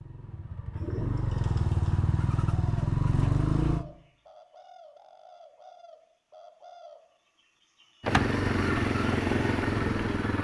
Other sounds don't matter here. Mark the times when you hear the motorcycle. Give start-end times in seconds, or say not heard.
0.0-3.9, 8.0-10.3.